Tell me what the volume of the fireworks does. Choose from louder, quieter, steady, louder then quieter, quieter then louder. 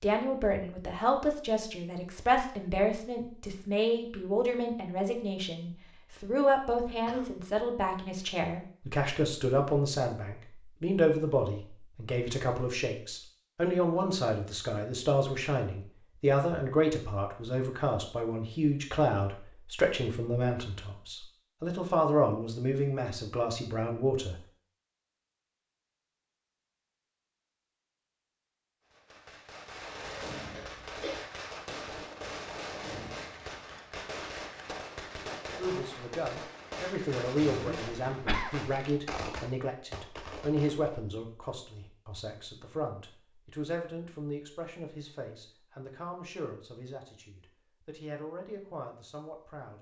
steady.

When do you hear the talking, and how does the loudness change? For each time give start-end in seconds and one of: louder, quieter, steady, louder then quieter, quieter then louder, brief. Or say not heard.
0.0-24.4 steady
35.5-49.7 quieter.